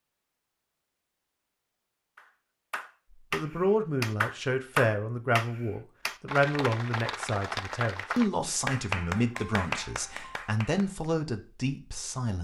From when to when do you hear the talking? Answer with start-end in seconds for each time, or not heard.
3.3-12.4.